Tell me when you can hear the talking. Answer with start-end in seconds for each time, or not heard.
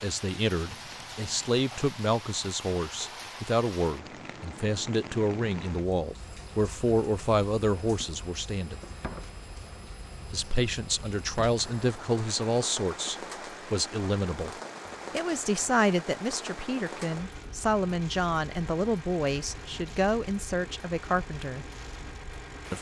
0.0-8.8, 10.3-21.6.